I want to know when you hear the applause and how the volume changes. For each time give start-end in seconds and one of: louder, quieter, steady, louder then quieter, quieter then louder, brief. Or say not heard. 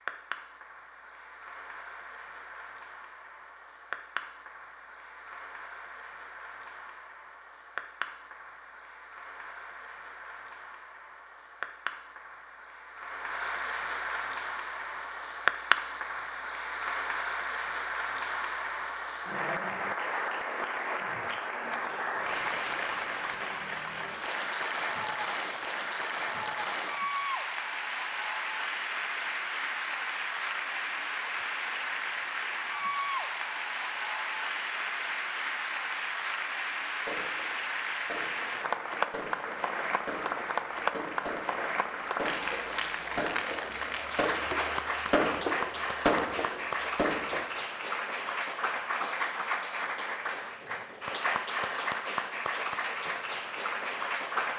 0.0-54.5 louder.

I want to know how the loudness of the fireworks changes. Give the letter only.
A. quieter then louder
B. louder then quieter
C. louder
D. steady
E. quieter
C.